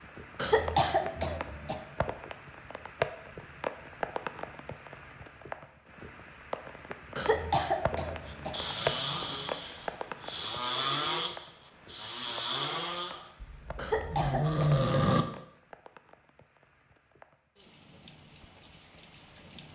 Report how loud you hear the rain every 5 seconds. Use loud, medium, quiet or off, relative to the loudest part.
loud, loud, medium, quiet.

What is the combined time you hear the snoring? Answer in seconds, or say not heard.
7 s.